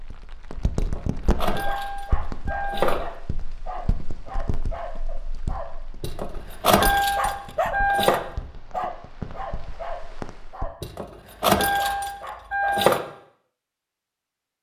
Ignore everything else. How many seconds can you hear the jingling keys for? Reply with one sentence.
The jingling keys can be heard for 7 seconds in total.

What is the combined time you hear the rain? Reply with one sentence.
You can hear the rain for 11 seconds altogether.